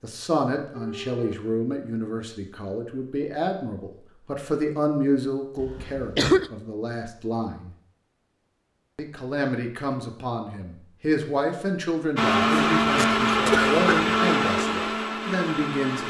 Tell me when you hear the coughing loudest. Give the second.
6 s.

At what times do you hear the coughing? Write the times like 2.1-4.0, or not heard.
5.6-6.5, 12.5-14.2.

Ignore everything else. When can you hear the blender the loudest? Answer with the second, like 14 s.
13 s.